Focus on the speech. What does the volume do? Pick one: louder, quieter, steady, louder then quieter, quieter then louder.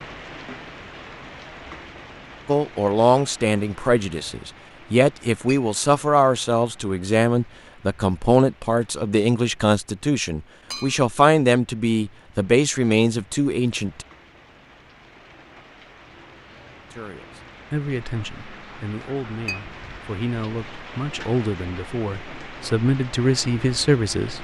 quieter then louder.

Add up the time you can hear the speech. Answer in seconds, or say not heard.
19 s.